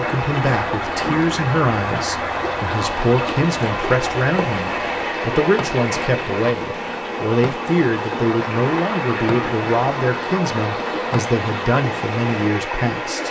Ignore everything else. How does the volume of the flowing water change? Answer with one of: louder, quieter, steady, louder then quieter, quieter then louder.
steady.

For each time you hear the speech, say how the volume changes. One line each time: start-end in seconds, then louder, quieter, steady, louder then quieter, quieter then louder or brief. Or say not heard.
0.0-13.2 steady.